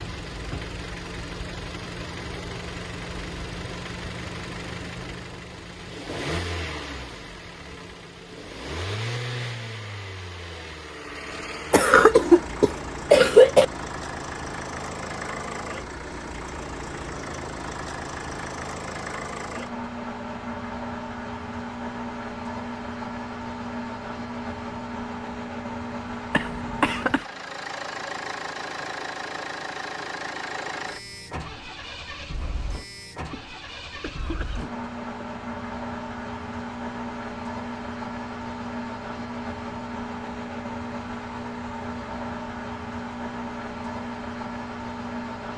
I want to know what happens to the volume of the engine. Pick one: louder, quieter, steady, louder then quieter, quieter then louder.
steady.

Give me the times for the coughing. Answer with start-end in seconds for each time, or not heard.
11.7-13.7, 26.3-27.2, 33.3-35.2.